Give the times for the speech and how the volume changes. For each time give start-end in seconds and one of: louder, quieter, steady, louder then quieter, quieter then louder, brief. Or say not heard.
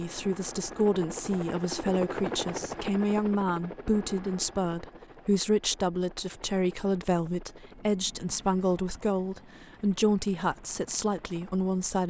0.0-12.0 steady.